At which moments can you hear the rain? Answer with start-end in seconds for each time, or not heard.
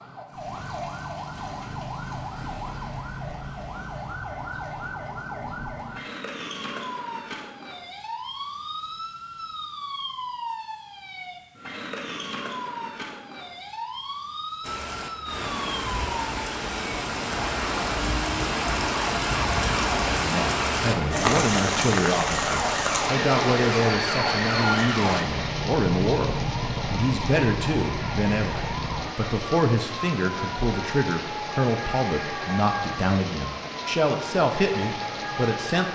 14.6-35.9.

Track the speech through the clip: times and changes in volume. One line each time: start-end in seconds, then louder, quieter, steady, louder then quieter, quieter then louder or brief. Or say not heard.
20.2-35.9 steady.